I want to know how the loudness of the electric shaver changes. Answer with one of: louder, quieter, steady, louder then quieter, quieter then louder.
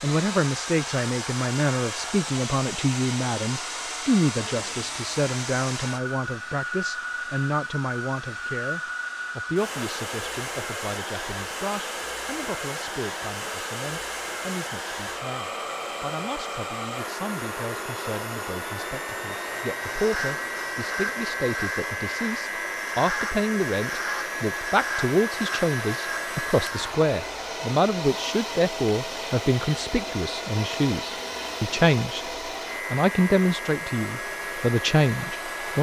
steady.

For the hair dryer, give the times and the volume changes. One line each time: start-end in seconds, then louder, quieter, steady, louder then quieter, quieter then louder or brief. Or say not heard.
0.0-35.7 steady.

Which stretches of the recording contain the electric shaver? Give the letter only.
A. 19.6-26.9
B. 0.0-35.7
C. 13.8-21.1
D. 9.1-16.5
A.